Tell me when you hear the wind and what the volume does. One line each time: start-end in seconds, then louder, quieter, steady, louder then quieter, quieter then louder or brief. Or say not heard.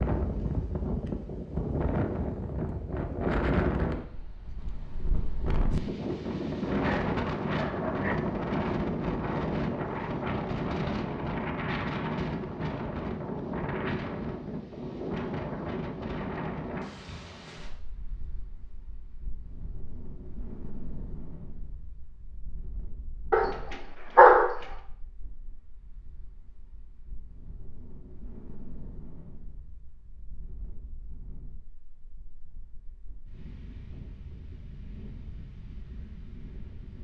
0.0-37.0 quieter.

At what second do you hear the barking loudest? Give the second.
24 s.